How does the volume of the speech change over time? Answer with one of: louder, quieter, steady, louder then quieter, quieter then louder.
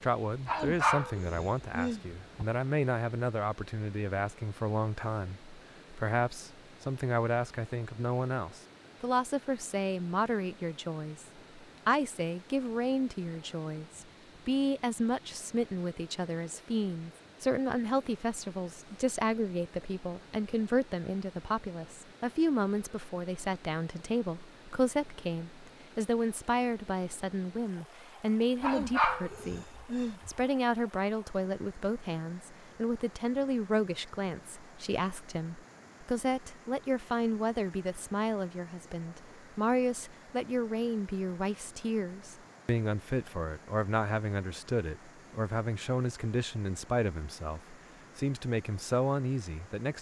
steady.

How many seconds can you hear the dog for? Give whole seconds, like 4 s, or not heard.
4 s.